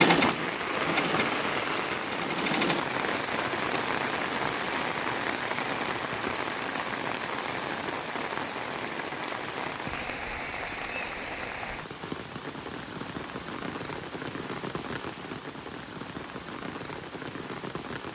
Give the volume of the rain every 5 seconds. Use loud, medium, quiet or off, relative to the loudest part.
loud, loud, medium, medium.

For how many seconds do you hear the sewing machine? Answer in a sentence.
The sewing machine can be heard for 3 seconds in total.